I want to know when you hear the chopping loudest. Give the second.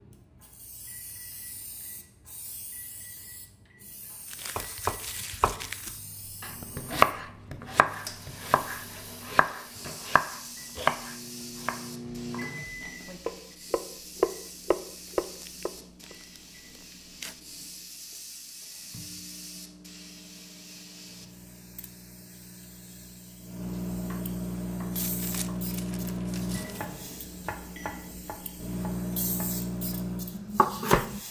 7 s.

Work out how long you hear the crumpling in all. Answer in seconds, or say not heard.
6 s.